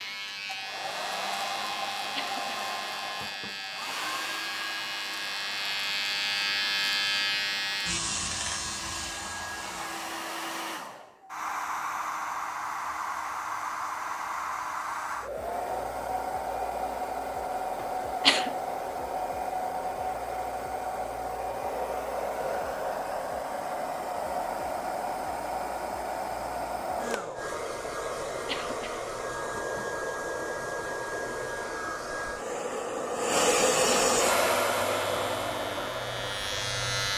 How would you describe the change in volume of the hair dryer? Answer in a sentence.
The volume of the hair dryer goes up.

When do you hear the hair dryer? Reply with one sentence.
The hair dryer can be heard from 0.0 to 37.1 s.